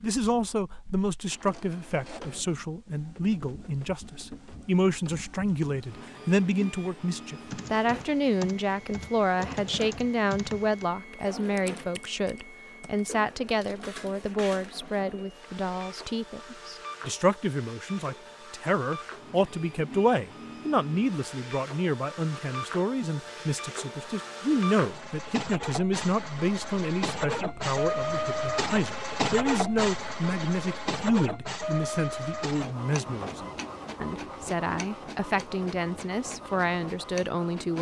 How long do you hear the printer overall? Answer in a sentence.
You can hear the printer for 38 seconds altogether.